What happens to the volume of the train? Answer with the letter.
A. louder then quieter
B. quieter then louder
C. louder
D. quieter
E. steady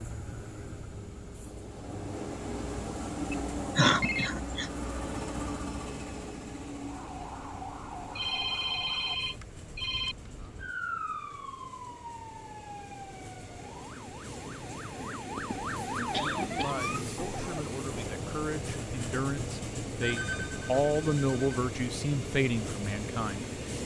B.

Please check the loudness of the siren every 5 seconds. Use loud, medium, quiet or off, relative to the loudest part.
off, medium, medium, loud, off.